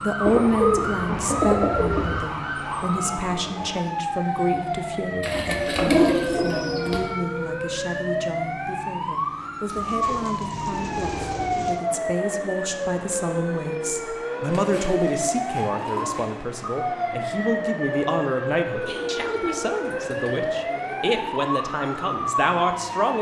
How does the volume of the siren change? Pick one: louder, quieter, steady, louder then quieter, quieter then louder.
steady.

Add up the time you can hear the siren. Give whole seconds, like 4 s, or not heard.
23 s.